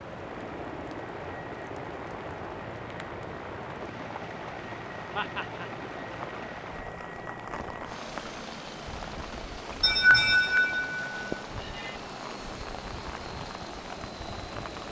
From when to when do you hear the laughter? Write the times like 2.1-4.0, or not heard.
5.2-5.7, 9.8-11.9.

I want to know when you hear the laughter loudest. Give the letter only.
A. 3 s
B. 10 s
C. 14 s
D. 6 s
B.